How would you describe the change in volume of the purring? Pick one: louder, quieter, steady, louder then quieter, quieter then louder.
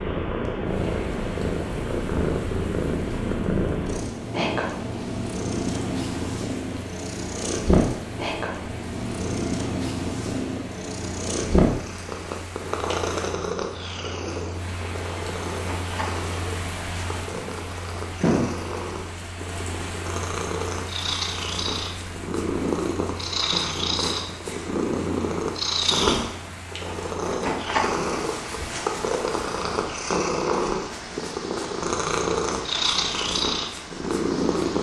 quieter then louder.